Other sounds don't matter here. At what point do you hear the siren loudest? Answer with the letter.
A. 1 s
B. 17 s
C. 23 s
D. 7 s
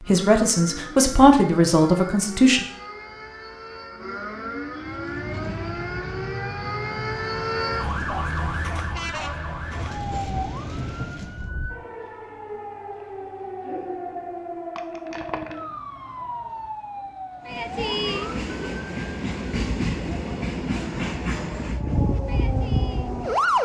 C.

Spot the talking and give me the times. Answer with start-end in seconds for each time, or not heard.
0.0-2.6.